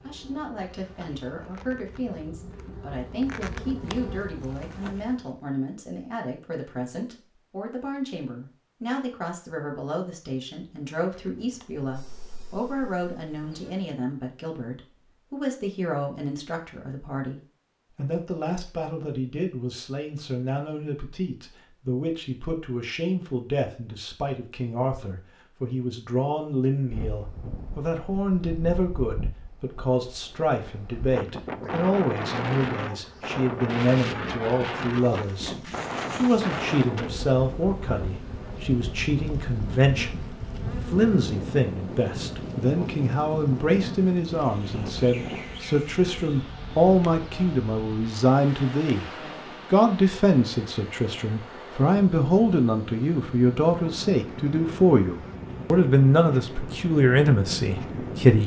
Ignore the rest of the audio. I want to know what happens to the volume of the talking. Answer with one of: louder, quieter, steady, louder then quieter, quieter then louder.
louder.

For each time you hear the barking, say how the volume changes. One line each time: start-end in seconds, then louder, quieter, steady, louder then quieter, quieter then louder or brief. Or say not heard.
not heard.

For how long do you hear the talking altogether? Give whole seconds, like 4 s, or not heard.
58 s.